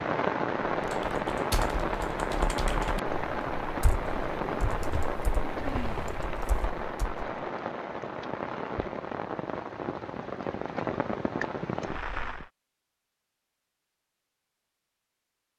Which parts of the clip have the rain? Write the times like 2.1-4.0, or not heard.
0.0-12.5.